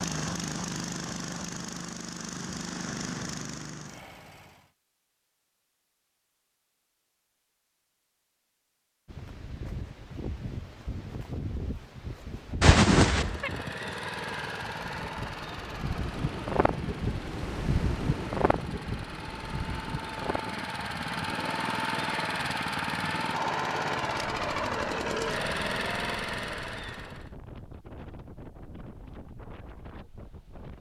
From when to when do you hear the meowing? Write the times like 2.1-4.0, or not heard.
12.6-13.5.